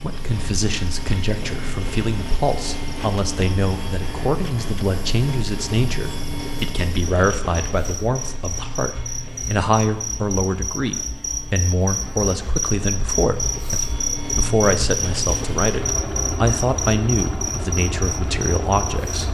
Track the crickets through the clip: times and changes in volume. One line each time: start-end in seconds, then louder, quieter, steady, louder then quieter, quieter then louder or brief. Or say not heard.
0.0-19.2 louder.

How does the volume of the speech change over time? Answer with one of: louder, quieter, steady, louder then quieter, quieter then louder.
steady.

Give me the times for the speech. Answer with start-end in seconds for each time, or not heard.
0.0-19.2.